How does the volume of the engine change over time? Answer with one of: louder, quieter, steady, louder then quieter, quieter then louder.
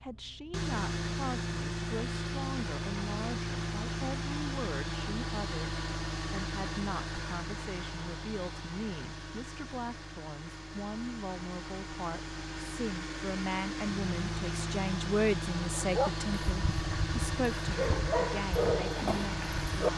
quieter then louder.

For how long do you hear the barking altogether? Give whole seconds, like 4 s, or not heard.
4 s.